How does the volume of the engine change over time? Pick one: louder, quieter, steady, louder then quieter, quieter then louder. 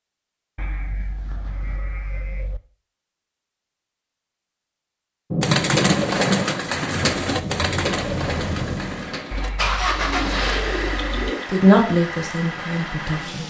louder then quieter.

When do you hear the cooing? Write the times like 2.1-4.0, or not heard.
5.4-11.4.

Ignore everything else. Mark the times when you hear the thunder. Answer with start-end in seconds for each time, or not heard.
5.3-8.9.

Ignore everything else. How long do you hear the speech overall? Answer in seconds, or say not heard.
2 s.